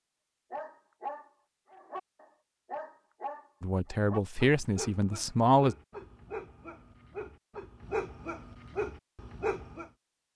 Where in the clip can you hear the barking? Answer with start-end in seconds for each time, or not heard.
0.5-9.9.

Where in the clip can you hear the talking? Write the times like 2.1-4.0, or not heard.
3.6-5.8.